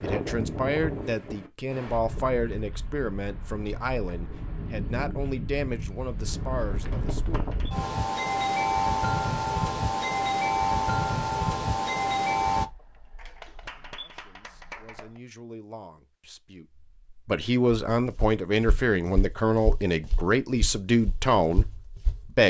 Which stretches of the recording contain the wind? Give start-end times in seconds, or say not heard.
0.0-12.7.